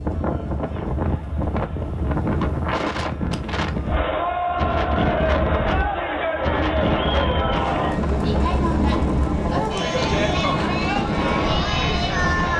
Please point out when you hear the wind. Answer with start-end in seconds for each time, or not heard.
0.0-12.5.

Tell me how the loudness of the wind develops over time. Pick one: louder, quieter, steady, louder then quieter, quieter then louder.
steady.